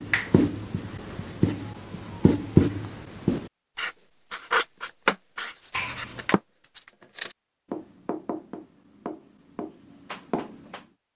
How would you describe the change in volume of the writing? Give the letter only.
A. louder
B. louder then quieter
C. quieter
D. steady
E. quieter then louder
B.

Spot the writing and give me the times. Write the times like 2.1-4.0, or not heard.
0.0-10.8.